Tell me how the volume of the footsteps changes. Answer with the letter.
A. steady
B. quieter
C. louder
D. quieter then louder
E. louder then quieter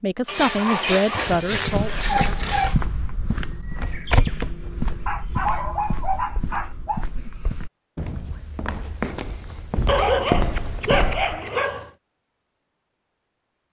D.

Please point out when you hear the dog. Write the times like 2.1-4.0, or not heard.
0.2-2.8, 5.0-7.0, 9.8-11.9.